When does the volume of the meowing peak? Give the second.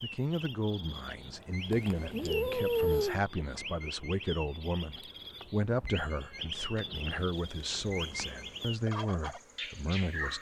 3 s.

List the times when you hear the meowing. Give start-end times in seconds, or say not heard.
1.7-3.2, 5.4-7.3.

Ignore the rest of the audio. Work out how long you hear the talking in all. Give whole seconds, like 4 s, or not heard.
10 s.